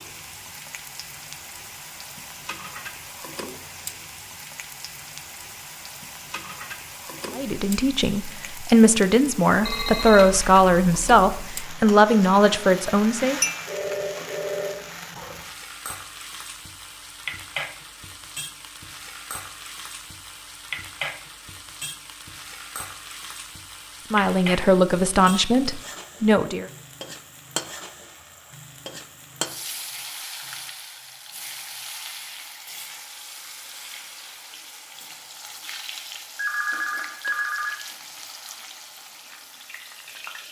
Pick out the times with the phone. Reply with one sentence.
The phone can be heard from 9.6 to 11.5 s, from 13.7 to 14.9 s and from 36.4 to 37.8 s.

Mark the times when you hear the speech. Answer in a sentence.
The speech can be heard from 7.3 to 13.4 s and from 24.1 to 26.6 s.